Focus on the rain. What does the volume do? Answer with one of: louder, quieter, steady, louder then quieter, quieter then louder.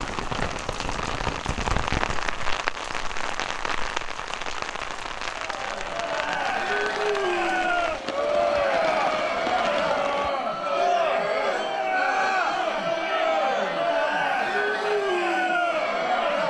quieter.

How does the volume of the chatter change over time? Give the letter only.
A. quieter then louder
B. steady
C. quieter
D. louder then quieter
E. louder
B.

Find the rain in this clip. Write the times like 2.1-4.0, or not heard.
0.0-10.3.